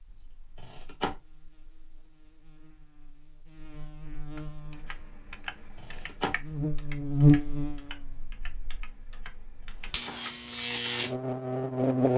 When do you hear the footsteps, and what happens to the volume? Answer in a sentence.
You can't hear the footsteps here.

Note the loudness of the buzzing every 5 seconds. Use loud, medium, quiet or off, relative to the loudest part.
quiet, loud, loud.